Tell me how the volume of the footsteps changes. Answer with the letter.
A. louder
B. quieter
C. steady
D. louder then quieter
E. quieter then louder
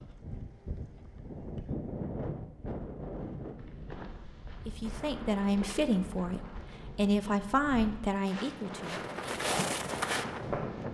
A.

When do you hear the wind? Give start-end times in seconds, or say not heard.
0.0-10.9.